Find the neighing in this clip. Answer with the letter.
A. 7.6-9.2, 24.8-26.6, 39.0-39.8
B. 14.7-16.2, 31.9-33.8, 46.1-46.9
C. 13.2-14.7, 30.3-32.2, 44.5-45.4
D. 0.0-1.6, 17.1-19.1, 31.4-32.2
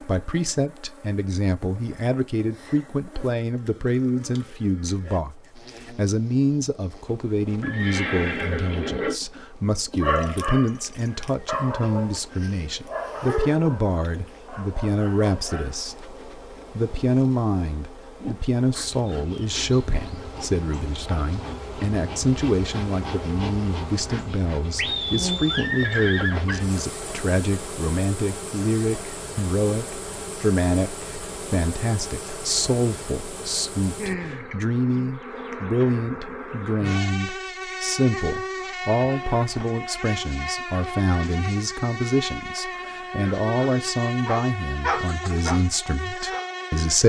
A.